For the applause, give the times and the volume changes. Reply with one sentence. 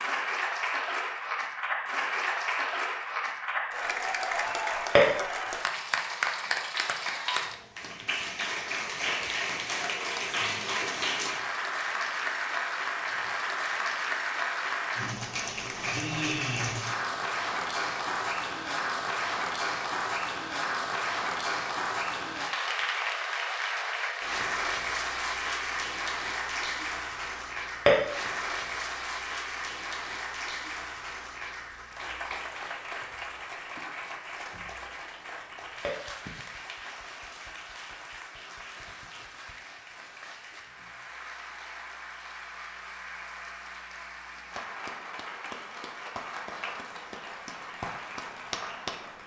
The applause can be heard from 0.0 to 49.2 s, getting quieter.